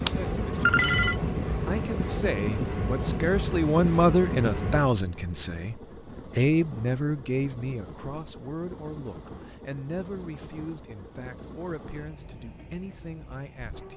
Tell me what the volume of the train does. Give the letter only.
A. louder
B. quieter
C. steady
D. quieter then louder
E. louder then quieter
B.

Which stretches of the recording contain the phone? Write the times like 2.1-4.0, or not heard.
0.1-1.1.